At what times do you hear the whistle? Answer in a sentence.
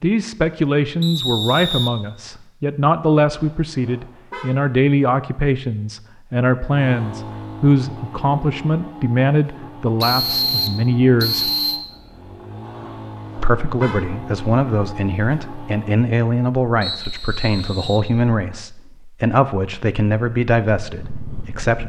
You can hear the whistle from 1.0 to 2.4 s, from 10.0 to 11.8 s and from 16.8 to 18.1 s.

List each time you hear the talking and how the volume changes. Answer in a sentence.
The talking can be heard from 0.0 to 11.5 s, at a steady volume; and from 13.3 to 21.8 s, at a steady volume.